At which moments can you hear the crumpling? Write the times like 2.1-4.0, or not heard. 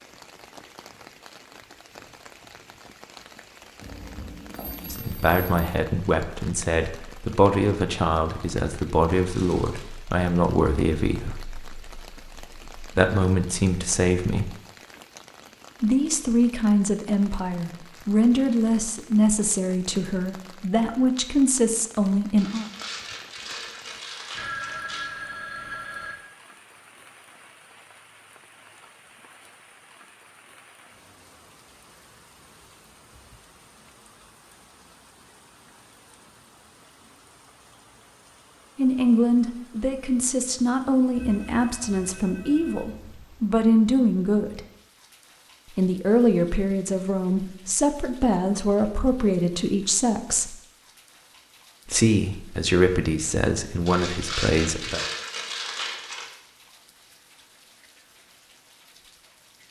9.2-9.9, 22.4-25.1, 53.9-56.3.